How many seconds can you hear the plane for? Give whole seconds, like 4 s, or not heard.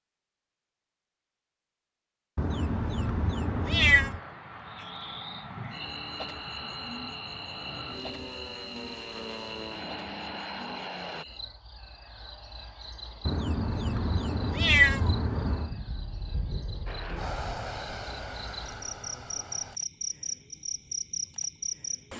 12 s.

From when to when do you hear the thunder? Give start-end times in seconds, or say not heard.
15.7-17.3.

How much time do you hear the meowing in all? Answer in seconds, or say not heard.
4 s.